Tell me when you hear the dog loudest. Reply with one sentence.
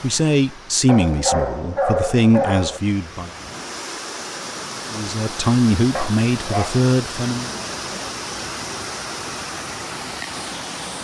The loudest moment of the dog is at 2 seconds.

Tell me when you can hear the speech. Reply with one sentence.
The speech can be heard from 0.0 to 3.3 s and from 4.9 to 7.5 s.